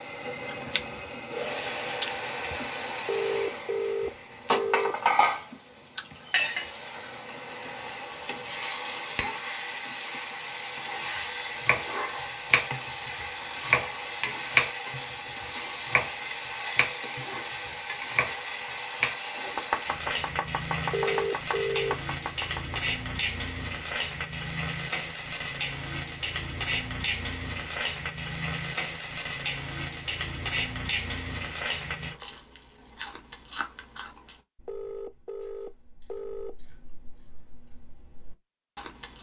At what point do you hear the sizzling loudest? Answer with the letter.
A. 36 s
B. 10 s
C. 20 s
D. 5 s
D.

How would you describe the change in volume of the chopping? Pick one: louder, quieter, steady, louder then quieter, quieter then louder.
quieter.